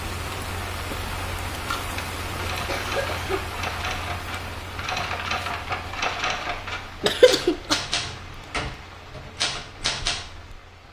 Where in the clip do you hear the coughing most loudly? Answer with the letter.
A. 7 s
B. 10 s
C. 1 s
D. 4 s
A.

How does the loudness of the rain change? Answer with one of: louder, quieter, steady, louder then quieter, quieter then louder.
quieter.